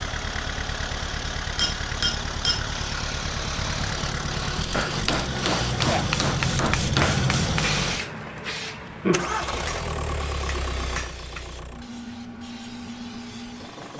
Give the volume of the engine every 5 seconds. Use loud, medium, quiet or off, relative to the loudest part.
loud, loud, medium.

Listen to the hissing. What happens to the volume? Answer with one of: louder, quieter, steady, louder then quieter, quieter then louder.
louder then quieter.